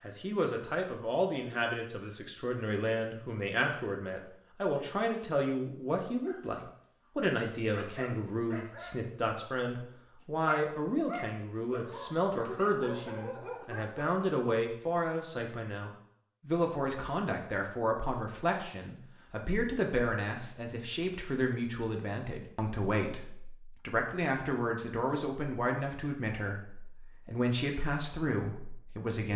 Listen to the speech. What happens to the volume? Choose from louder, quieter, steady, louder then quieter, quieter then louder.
steady.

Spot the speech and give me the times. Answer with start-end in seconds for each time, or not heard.
0.0-29.3.